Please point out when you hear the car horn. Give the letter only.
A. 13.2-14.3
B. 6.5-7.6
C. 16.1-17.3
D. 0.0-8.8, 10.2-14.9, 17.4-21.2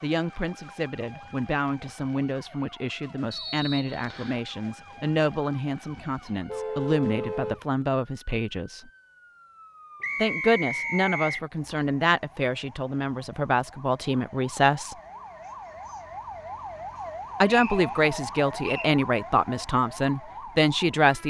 B.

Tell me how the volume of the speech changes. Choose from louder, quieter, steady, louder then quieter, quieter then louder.
louder.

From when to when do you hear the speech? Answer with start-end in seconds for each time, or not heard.
0.0-8.8, 10.2-14.9, 17.4-21.2.